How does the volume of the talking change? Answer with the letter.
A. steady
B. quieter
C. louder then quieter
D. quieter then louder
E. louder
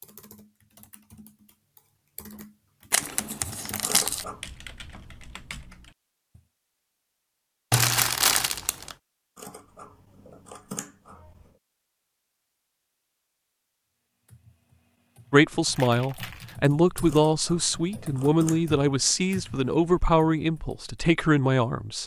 A.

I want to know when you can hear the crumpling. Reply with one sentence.
The crumpling can be heard from 2.9 to 4.2 s, from 7.7 to 8.9 s and from 15.7 to 16.6 s.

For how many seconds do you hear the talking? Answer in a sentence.
The talking can be heard for 7 seconds in total.